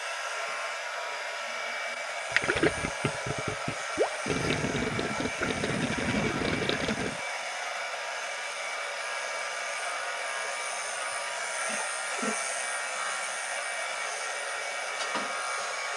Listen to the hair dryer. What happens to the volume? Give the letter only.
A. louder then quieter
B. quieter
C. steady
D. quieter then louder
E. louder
C.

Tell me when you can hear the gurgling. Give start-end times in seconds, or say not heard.
2.3-7.2.